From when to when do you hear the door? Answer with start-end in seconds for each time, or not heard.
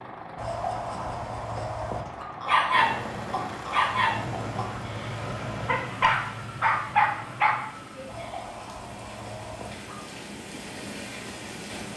not heard.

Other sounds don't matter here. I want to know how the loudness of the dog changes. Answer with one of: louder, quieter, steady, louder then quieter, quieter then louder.
quieter then louder.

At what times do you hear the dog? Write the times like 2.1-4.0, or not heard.
2.4-8.1.